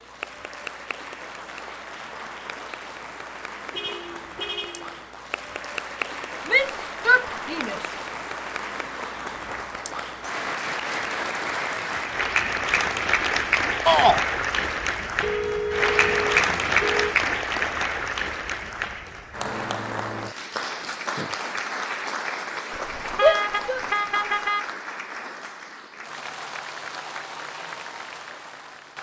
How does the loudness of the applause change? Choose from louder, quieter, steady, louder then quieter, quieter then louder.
louder then quieter.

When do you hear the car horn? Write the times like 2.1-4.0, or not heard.
3.7-5.0, 15.2-17.1, 22.7-24.6.